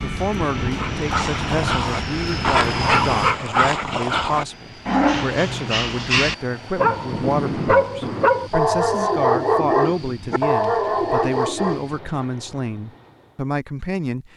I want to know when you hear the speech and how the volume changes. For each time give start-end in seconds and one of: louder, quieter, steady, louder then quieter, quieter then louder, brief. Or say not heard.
0.0-14.3 steady.